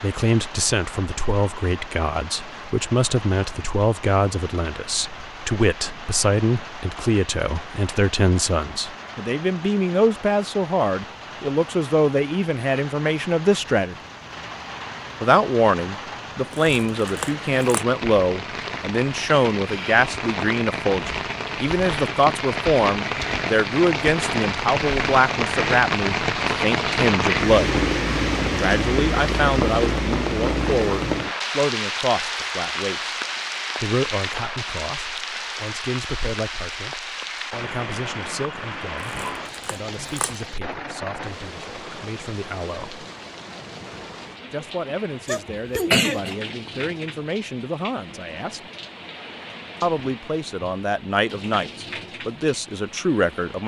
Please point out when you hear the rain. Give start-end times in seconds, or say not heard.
0.0-53.6.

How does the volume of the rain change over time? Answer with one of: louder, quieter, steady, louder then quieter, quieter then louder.
louder then quieter.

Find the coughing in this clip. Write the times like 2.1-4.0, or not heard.
45.2-46.4.